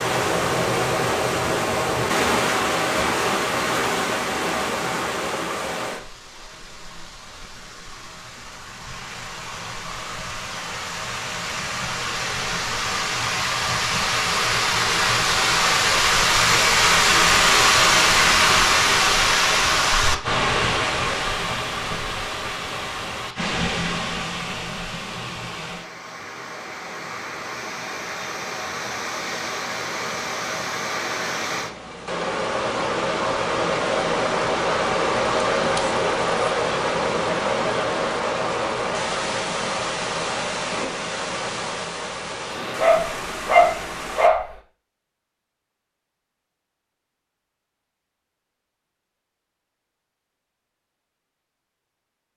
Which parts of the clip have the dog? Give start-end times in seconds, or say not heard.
42.8-44.5.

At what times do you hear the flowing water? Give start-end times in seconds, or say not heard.
0.0-44.3.